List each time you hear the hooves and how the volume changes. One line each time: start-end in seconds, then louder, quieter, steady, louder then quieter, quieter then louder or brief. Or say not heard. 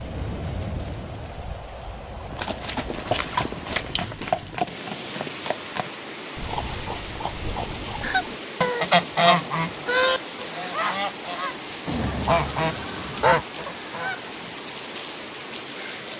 2.2-8.3 quieter.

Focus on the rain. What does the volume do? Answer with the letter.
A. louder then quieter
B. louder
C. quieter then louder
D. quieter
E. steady
E.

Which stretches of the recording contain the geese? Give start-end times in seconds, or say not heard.
8.0-14.6.